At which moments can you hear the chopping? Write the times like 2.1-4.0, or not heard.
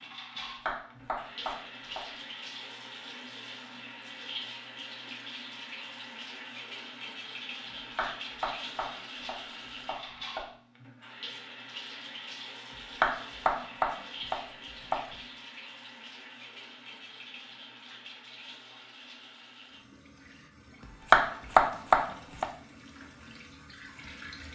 0.6-2.0, 8.0-10.4, 13.0-15.1, 21.1-22.4.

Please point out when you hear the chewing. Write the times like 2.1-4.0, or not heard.
not heard.